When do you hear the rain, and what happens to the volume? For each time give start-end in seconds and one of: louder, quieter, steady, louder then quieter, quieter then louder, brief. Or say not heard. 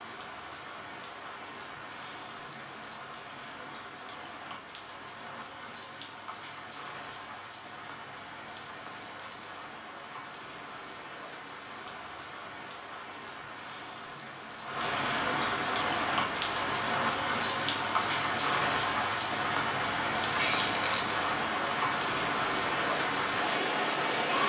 0.0-24.4 louder.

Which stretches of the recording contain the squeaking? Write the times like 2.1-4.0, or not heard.
20.3-21.0.